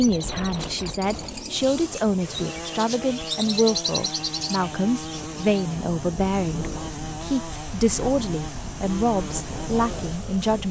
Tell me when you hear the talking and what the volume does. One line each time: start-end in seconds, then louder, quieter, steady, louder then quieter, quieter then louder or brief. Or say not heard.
0.0-10.6 steady.